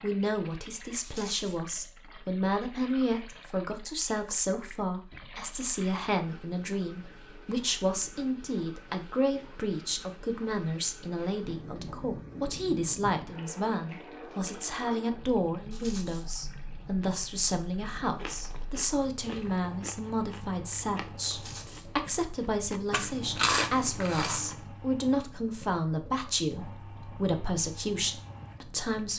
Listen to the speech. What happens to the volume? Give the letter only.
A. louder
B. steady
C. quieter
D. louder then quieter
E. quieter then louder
B.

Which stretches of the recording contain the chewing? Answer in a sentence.
The chewing can be heard from 18.2 to 21.8 s and from 22.7 to 24.6 s.